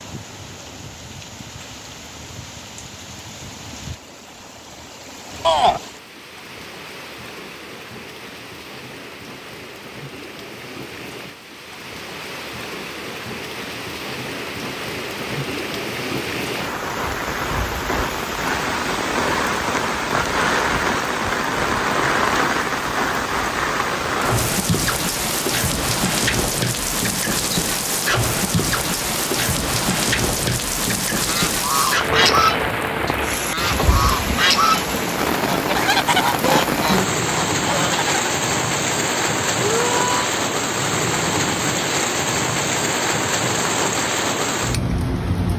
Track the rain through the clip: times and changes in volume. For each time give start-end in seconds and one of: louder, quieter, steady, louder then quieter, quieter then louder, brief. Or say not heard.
0.0-45.5 louder.